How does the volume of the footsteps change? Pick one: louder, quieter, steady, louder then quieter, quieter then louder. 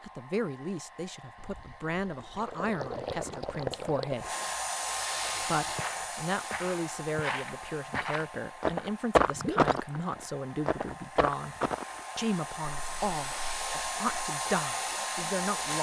louder then quieter.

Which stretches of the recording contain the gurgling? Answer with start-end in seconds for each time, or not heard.
1.4-4.2, 9.3-9.9.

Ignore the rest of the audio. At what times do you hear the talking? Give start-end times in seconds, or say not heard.
0.0-4.3, 5.4-11.6, 12.2-15.7.